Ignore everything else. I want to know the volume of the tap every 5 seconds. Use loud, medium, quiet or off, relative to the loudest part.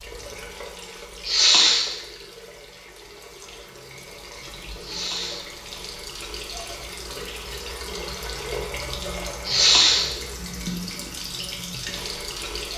medium, loud, loud.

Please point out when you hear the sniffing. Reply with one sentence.
You can hear the sniffing from 1.2 to 1.9 s, from 4.8 to 5.5 s and from 9.4 to 10.1 s.